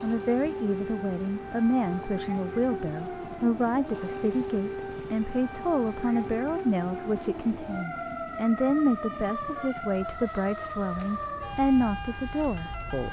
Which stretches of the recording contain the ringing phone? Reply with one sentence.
You can't hear the ringing phone here.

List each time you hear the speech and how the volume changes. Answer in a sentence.
The speech can be heard from 0.0 to 13.0 s, at a steady volume.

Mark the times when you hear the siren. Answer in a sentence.
The siren can be heard from 0.0 to 13.0 s.